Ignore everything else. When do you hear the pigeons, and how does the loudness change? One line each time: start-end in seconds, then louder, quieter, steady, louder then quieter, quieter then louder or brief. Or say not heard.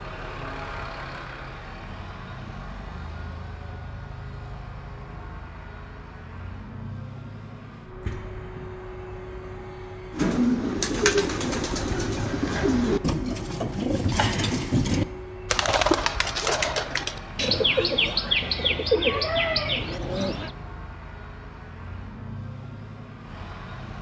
10.1-20.5 steady.